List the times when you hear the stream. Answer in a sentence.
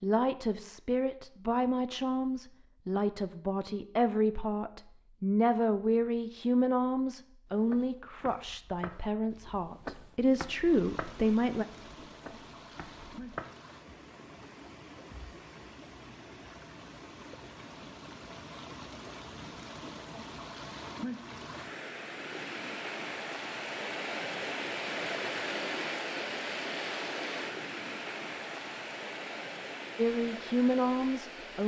The stream can be heard from 10.4 to 31.6 s.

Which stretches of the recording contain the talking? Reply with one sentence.
You can hear the talking from 0.0 to 11.7 s and from 29.9 to 31.6 s.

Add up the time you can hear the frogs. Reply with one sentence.
You can't hear the frogs here.